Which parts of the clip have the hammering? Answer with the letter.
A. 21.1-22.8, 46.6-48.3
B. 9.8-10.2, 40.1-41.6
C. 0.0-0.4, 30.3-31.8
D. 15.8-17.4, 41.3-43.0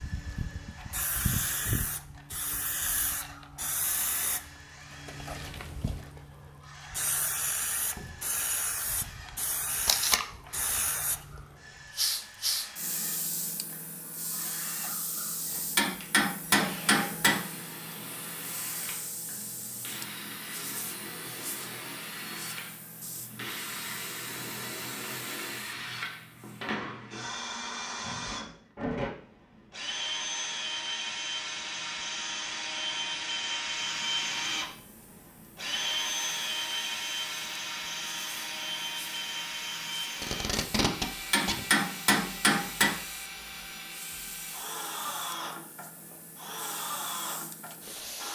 D.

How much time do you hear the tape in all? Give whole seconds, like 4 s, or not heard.
2 s.